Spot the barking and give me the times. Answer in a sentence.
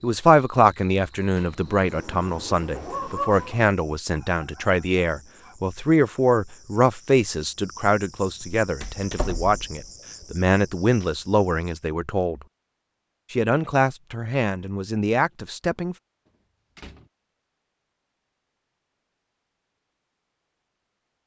The barking can be heard from 2.8 to 5.5 s.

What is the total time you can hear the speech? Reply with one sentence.
The speech can be heard for 15 seconds in total.